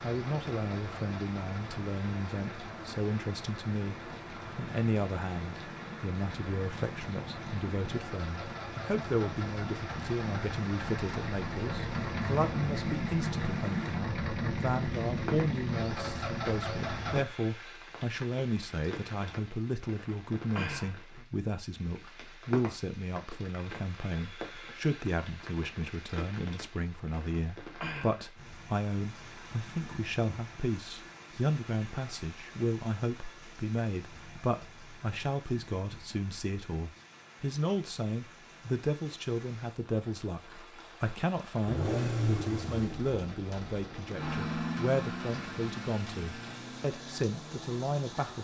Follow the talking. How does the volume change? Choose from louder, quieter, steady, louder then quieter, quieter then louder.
steady.